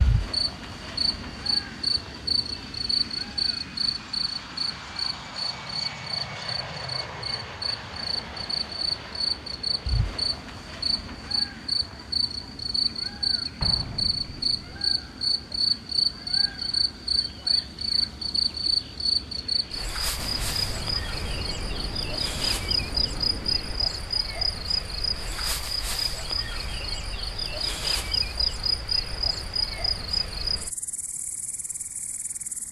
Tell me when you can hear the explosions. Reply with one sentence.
You can hear the explosions from 13.6 to 14.6 s and from 20.1 to 23.9 s.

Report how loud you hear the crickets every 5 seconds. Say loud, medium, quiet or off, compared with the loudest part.
loud, medium, loud, loud, loud, loud, medium.